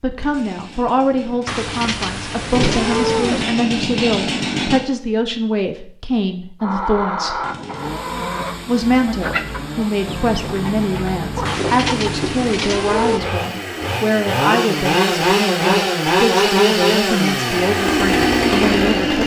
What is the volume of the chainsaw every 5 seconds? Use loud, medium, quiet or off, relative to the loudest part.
medium, quiet, medium, loud.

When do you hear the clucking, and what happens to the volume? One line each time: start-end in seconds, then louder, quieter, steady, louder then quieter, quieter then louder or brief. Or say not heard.
6.6-12.6 steady.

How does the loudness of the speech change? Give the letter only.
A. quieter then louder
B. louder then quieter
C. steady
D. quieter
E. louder
C.